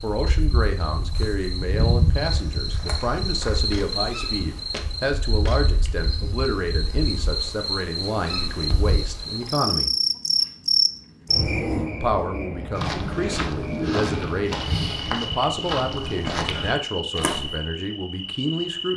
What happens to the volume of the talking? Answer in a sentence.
The loudness of the talking stays about the same.